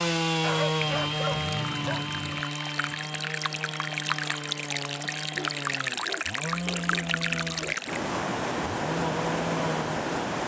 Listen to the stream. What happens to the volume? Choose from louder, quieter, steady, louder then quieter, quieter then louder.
louder.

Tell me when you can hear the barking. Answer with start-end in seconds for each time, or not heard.
0.4-2.5, 5.3-7.8.